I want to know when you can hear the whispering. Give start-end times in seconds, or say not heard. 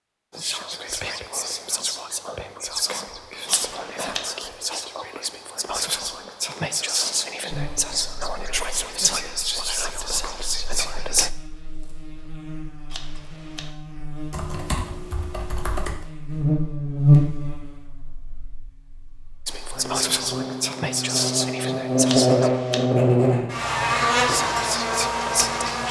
0.3-11.3, 19.4-22.5, 24.2-25.8.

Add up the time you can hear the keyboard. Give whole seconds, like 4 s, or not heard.
2 s.